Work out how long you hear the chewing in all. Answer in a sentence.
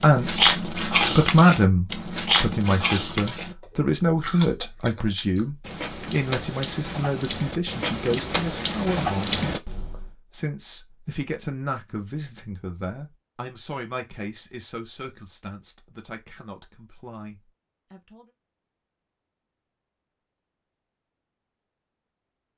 You can hear the chewing for 10 seconds altogether.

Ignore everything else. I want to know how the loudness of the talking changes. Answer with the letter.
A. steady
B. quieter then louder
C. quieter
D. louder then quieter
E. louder
C.